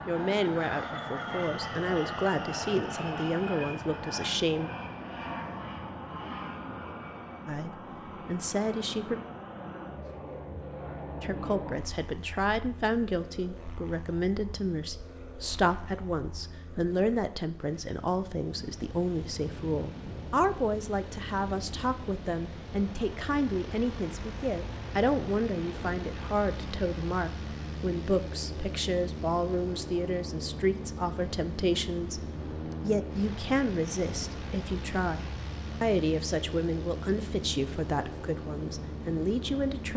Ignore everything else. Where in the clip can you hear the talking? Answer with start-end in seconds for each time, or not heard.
0.1-4.7, 7.5-9.2, 11.2-39.9.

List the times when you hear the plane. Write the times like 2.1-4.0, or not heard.
0.0-39.9.